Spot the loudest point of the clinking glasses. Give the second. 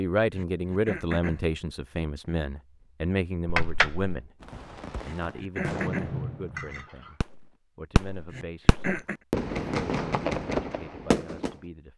4 s.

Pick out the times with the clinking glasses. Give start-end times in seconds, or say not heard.
3.5-4.2, 6.5-7.2.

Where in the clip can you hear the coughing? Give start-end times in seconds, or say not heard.
0.3-1.4, 5.0-6.2, 8.3-9.2.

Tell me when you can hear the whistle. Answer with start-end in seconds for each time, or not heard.
not heard.